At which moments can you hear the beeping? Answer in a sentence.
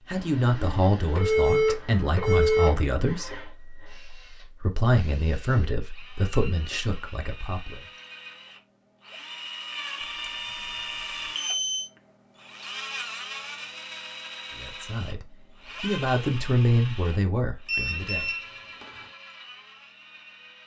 The beeping can be heard from 1.1 to 2.8 s, from 10.0 to 10.7 s, from 11.3 to 11.9 s and from 17.6 to 19.1 s.